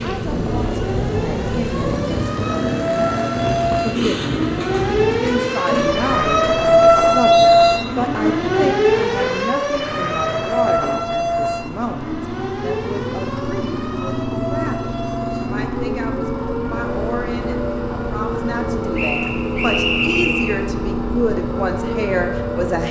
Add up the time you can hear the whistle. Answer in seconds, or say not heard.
2 s.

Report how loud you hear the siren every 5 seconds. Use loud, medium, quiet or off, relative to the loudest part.
medium, loud, medium, quiet, quiet.